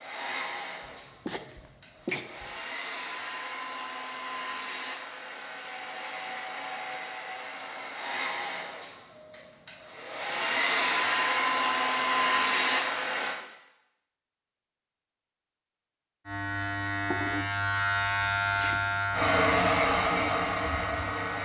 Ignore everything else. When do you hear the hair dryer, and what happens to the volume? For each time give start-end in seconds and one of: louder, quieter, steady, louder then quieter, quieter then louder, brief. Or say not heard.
0.0-13.3 louder
19.1-21.4 brief.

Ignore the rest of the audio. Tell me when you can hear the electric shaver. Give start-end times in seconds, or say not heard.
16.2-21.4.